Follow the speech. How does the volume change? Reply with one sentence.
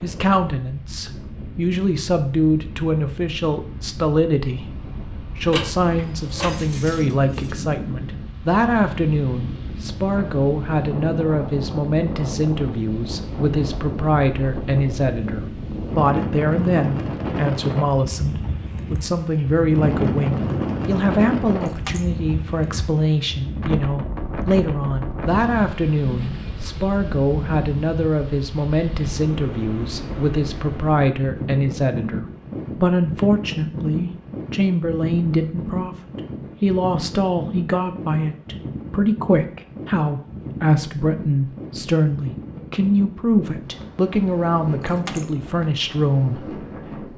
The loudness of the speech stays about the same.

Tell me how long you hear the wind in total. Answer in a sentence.
You can hear the wind for 47 seconds altogether.